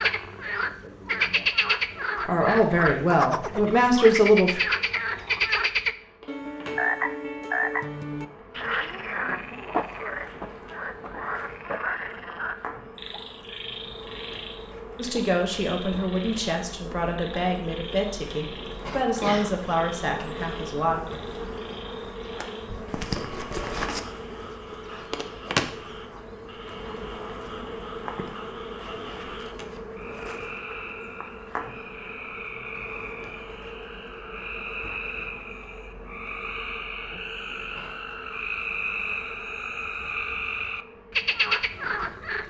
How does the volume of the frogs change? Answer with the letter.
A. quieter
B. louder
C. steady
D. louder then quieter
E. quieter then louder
E.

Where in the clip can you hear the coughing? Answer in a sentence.
You can hear the coughing from 19.2 to 19.8 s.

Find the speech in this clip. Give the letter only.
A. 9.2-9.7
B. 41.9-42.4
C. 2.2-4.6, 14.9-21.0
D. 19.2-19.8
C.